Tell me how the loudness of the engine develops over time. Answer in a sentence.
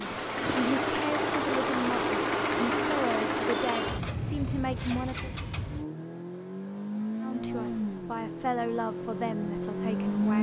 The loudness of the engine goes down.